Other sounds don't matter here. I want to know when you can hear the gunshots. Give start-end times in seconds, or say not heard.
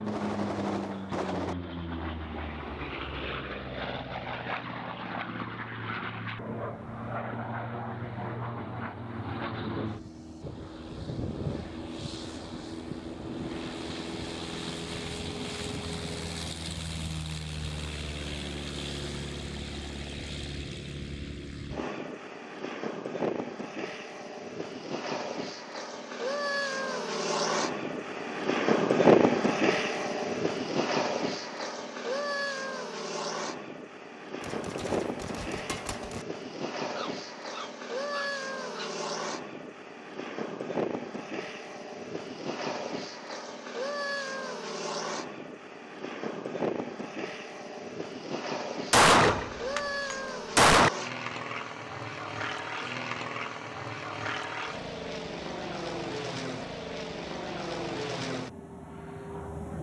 0.1-1.6, 34.4-36.2, 48.9-50.9.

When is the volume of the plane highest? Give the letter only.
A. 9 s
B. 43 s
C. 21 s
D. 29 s
D.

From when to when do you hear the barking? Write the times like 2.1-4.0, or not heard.
36.9-38.9.